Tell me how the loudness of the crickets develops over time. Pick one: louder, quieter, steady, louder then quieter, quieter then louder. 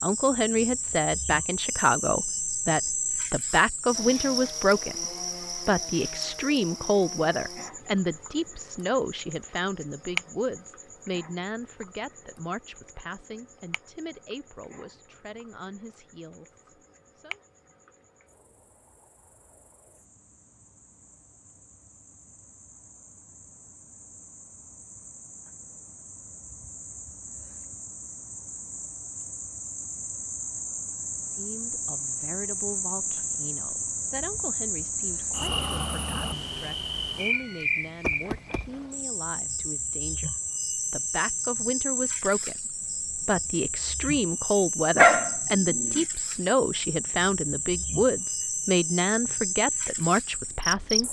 quieter then louder.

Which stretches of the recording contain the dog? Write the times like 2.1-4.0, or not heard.
45.0-46.0.